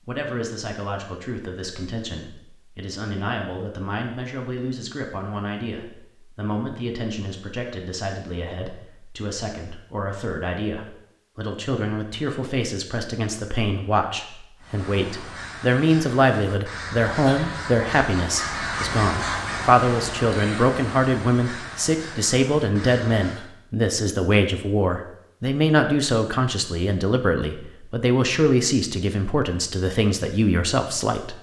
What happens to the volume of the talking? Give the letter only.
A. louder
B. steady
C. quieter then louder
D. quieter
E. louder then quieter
A.